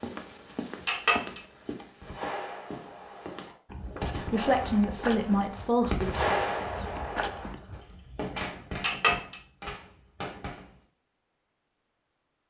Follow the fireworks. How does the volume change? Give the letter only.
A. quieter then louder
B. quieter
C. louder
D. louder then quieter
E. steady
D.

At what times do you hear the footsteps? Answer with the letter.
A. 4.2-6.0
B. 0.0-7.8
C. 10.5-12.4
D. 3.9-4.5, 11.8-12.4
B.